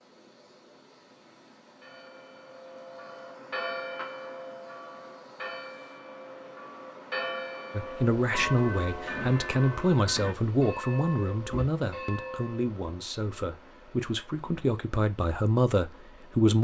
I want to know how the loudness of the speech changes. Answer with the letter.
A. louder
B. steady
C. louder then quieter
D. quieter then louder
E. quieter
D.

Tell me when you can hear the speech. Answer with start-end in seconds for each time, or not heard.
7.8-16.5.